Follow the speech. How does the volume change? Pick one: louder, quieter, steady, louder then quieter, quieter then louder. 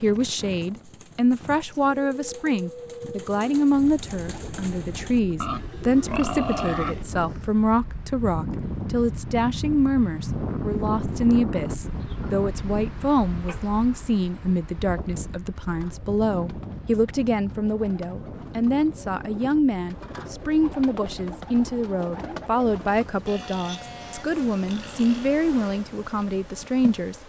steady.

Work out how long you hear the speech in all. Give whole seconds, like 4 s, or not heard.
27 s.